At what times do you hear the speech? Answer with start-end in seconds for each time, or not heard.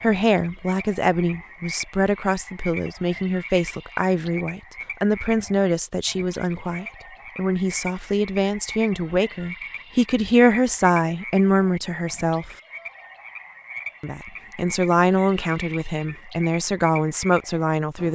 0.0-12.6, 14.0-18.1.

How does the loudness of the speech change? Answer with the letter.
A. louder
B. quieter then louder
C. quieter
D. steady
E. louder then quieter
D.